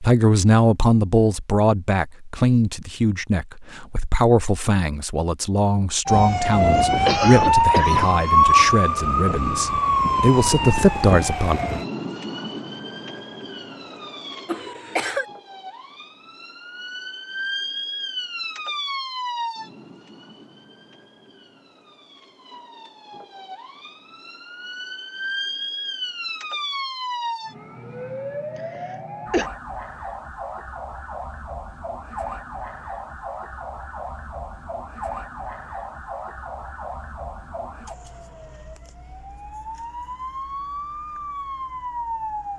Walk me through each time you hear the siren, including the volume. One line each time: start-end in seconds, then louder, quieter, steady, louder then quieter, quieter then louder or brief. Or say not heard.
6.0-42.5 quieter.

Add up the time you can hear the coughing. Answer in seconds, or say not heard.
3 s.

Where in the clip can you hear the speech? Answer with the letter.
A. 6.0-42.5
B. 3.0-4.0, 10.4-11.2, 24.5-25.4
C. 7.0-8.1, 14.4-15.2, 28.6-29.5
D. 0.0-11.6
D.